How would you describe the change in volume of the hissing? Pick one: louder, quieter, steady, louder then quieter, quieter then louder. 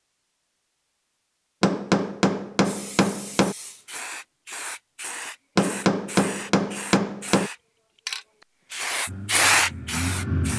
louder.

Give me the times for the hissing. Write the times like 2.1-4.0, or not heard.
2.6-10.5.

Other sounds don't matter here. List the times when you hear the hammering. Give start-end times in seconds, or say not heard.
1.6-3.5, 5.5-7.5.